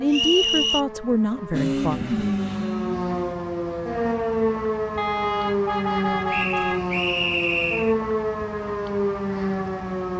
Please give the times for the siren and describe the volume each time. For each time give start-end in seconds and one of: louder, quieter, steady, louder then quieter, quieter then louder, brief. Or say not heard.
0.0-10.1 louder.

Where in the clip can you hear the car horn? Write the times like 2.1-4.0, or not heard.
5.0-6.8.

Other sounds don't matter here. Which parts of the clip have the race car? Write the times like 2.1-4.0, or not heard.
1.5-3.4.